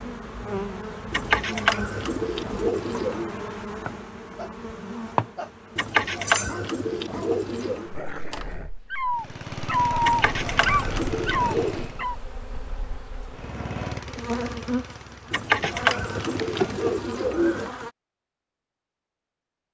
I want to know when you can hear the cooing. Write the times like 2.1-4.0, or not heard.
1.1-3.3, 5.8-7.9, 10.0-11.9, 15.3-17.7.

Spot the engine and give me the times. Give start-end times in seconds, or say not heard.
9.1-12.1, 13.2-17.1.